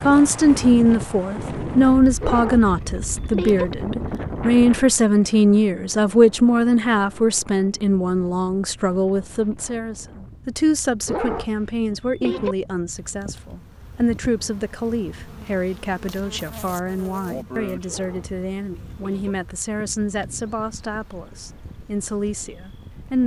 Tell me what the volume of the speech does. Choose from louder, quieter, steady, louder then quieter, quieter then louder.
quieter.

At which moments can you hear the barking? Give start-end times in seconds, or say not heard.
2.2-3.6, 11.1-12.6, 17.9-19.4.